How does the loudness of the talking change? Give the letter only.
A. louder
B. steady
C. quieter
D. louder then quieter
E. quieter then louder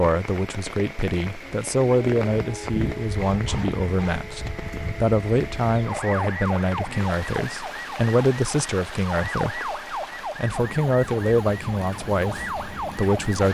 B.